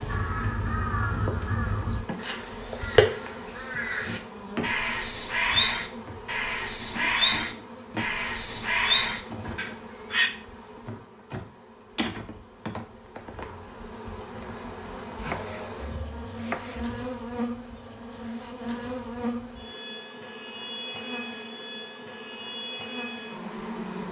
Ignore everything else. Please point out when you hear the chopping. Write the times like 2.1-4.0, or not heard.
15.2-17.1.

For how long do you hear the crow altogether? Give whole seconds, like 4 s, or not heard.
10 s.